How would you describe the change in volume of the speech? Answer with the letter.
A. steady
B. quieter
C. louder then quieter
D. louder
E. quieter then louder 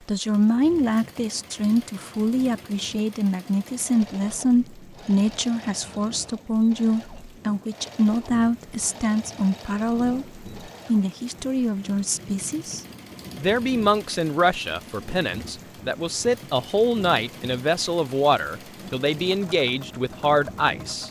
A.